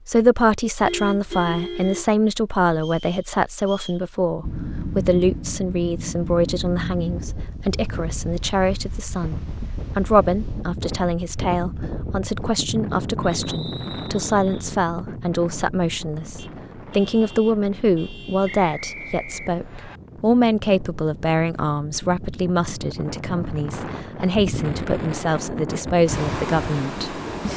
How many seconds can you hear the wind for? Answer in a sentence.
The wind can be heard for 23 seconds in total.